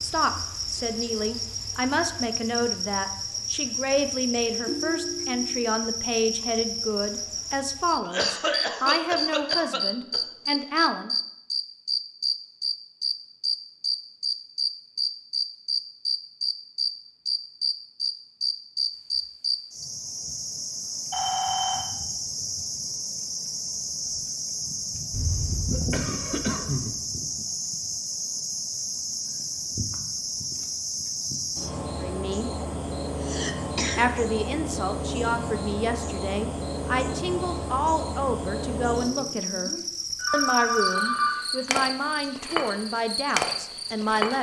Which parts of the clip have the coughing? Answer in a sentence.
You can hear the coughing from 8.0 to 10.6 s, from 25.1 to 26.9 s and from 33.2 to 34.0 s.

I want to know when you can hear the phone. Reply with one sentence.
You can hear the phone from 4.7 to 5.6 s, from 21.1 to 21.9 s and from 40.1 to 41.4 s.